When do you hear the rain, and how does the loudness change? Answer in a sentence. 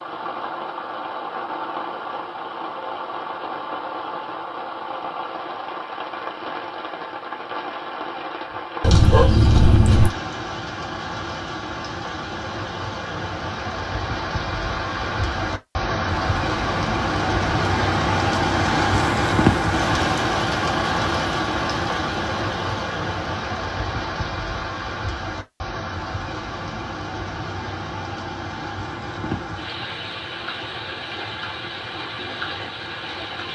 You can hear the rain from 0.0 to 33.5 s, getting louder then quieter.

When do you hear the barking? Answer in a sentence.
You can hear the barking from 8.8 to 10.1 s.